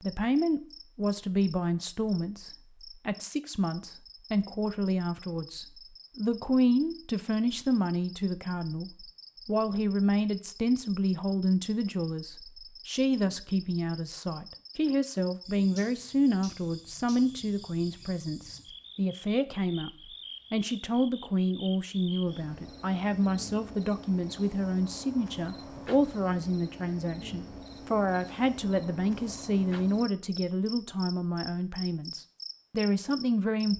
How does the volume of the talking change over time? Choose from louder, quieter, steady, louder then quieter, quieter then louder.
steady.